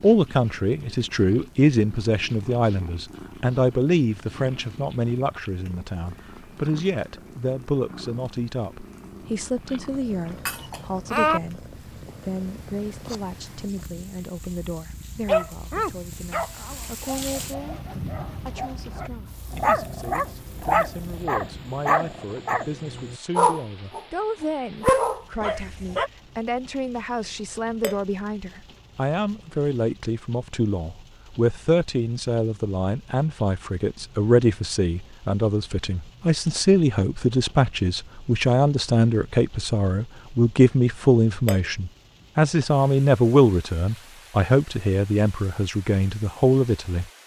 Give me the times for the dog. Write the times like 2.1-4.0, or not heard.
15.2-26.1.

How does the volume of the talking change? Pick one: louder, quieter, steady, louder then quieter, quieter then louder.
quieter then louder.